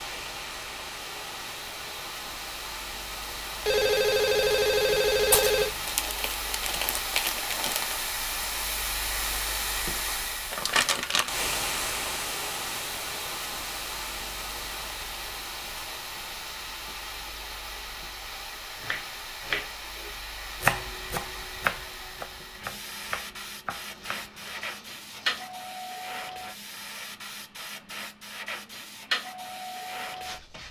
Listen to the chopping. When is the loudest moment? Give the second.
21 s.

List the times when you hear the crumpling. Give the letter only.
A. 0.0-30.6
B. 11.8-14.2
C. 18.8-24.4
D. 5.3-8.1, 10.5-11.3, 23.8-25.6
D.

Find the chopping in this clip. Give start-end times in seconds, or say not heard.
18.8-24.4.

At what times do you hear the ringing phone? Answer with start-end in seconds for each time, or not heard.
3.6-6.0.